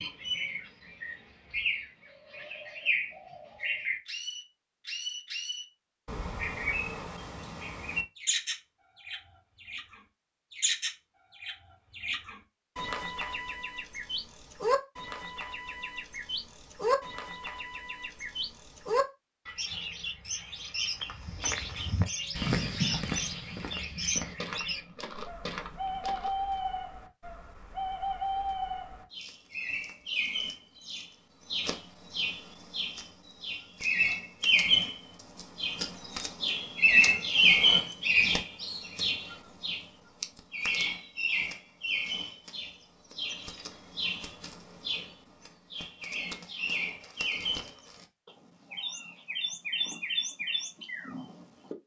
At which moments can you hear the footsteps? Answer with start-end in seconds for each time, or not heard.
21.0-26.6.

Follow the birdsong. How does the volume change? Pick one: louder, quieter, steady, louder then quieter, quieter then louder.
louder then quieter.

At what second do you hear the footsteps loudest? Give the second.
23 s.